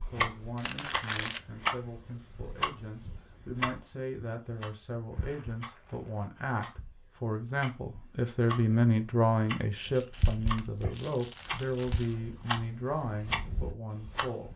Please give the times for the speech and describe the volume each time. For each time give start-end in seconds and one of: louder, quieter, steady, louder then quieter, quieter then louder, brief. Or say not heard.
0.1-14.5 louder then quieter.